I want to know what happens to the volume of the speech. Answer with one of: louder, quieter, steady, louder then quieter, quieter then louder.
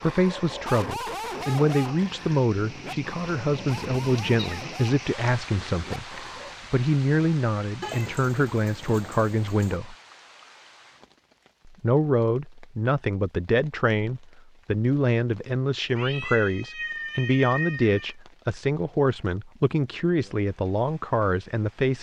steady.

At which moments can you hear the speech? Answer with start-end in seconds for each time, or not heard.
0.0-9.9, 11.7-21.9.